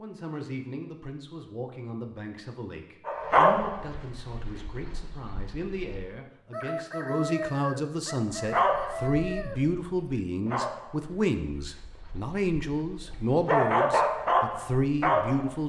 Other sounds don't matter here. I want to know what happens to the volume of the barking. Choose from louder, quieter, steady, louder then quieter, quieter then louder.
quieter then louder.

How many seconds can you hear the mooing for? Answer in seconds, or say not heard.
not heard.